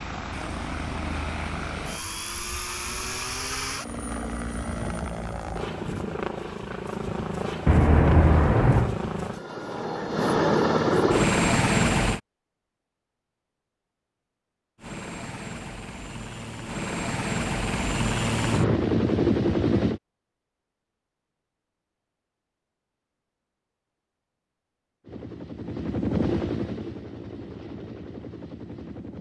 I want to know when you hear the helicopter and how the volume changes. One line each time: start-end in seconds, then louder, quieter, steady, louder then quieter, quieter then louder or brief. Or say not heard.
0.0-12.2 louder
14.8-20.0 louder
25.0-29.1 louder then quieter.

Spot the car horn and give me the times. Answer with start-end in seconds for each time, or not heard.
7.7-8.9.